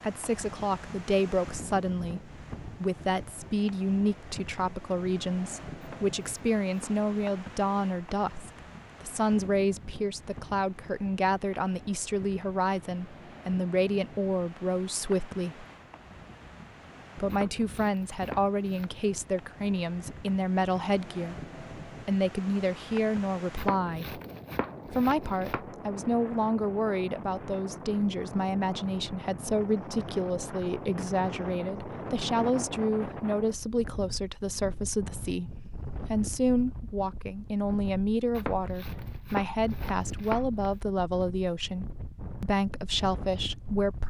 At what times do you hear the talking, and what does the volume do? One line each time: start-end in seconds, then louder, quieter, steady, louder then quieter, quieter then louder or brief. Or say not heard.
0.0-15.7 steady
17.1-24.2 steady
24.9-44.0 steady.